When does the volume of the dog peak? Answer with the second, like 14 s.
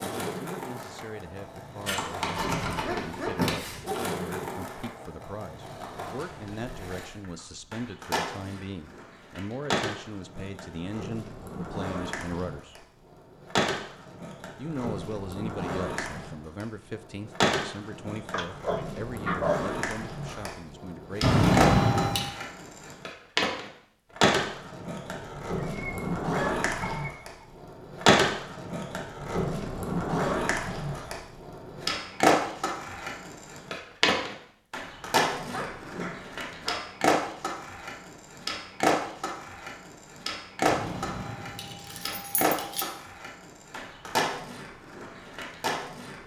19 s.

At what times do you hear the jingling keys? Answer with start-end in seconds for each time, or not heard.
1.9-4.0, 21.2-22.3, 40.6-42.9.